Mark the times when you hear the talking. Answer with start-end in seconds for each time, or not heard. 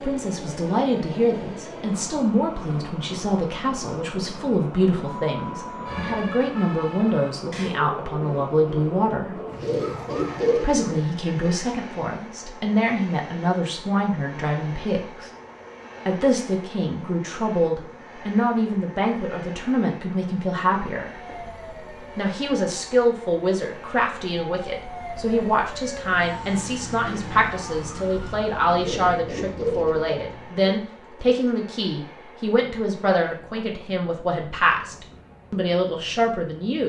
0.0-9.3, 10.6-15.3, 16.1-21.1, 22.1-36.8.